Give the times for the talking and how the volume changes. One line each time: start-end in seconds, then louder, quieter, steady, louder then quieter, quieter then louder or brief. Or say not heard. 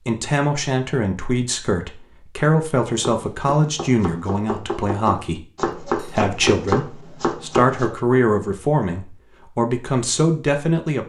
0.1-11.0 steady.